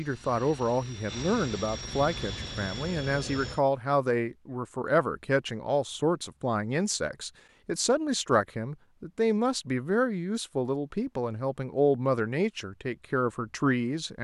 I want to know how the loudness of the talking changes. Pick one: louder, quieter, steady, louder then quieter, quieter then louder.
steady.